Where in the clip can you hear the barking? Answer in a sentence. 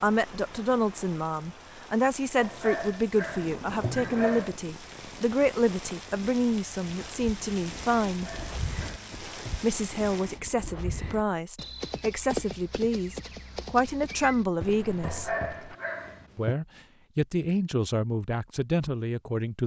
You can hear the barking from 2.4 to 4.5 s, from 8.1 to 9.7 s and from 15.0 to 16.6 s.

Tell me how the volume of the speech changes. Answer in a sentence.
The loudness of the speech stays about the same.